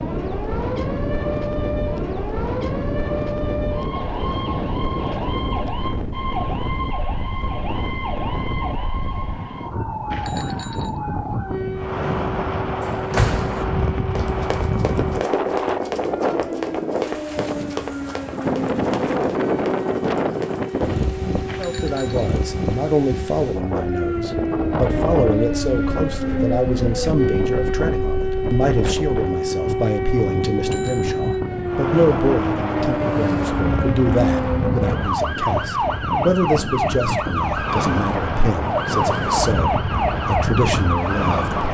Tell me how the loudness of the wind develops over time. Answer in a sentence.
The loudness of the wind stays about the same.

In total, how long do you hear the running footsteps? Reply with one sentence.
You can hear the running footsteps for 7 seconds altogether.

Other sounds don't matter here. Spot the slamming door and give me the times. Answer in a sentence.
The slamming door can be heard from 12.8 to 13.7 s.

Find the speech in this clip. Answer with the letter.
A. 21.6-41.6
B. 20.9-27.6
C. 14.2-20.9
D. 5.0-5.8
A.